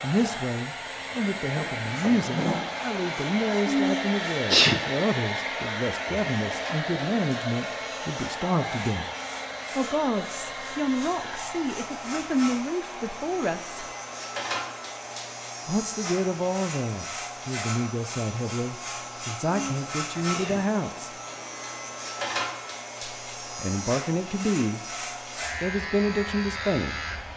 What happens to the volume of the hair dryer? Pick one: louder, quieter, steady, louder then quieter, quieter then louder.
quieter.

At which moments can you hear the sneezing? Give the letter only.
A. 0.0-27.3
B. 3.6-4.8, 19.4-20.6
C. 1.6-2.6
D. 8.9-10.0
B.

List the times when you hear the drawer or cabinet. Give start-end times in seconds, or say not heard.
1.6-2.6.